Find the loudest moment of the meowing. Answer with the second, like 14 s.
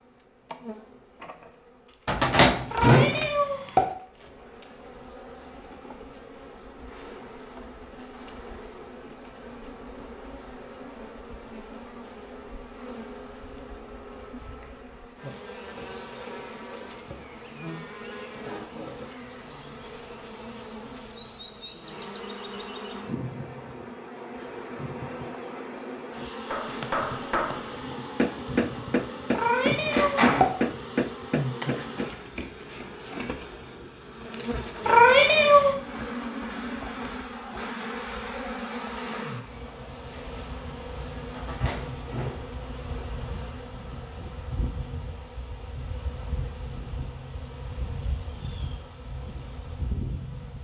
35 s.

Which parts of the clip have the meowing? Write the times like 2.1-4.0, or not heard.
2.7-3.9, 29.3-30.5, 34.8-35.8.